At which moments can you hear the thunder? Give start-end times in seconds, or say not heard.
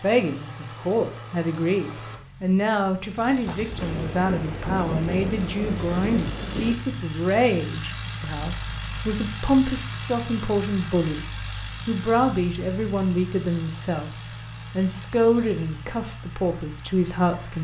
3.5-6.8.